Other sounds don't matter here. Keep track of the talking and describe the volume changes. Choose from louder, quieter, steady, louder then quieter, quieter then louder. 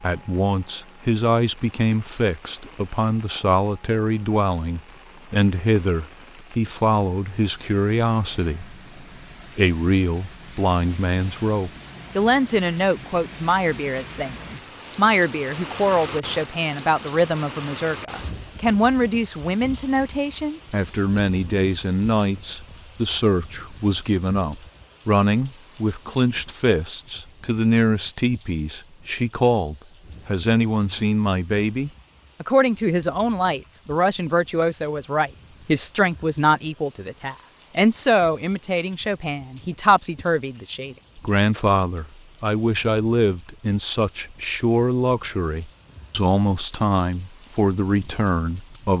steady.